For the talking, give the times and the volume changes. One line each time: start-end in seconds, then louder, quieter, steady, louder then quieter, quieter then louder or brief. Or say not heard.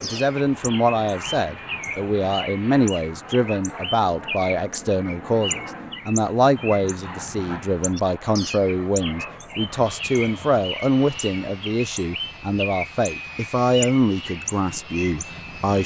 0.0-15.8 steady.